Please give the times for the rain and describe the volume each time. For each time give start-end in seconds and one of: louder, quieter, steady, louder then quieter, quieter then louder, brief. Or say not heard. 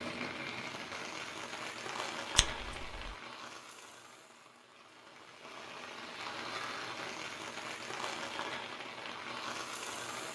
0.0-10.3 quieter then louder.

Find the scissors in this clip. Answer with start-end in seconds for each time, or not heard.
2.4-3.1.